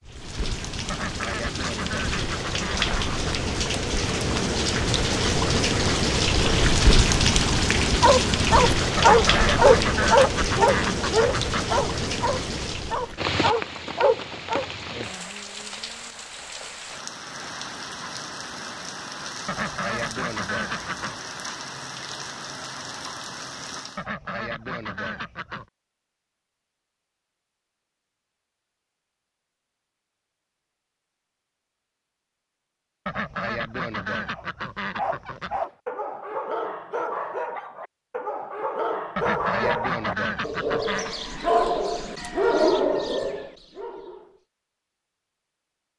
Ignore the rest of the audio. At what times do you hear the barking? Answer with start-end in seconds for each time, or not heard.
8.0-14.7, 34.3-44.2.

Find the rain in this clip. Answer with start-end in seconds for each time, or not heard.
0.0-24.1.